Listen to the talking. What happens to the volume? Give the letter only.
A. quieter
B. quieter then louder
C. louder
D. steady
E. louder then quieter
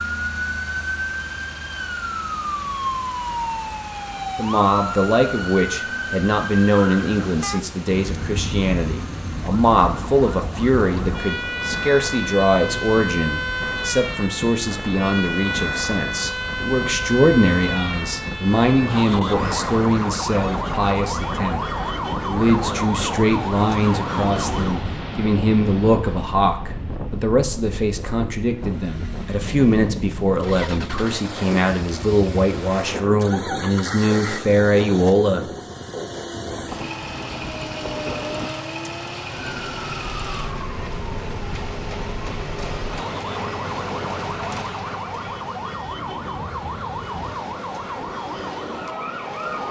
D.